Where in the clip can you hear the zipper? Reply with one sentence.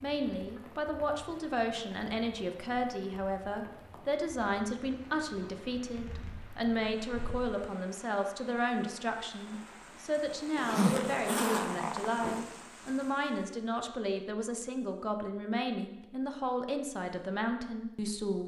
The zipper can be heard from 5.8 to 7.5 s and from 10.6 to 12.4 s.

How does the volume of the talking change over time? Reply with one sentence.
The volume of the talking stays about the same.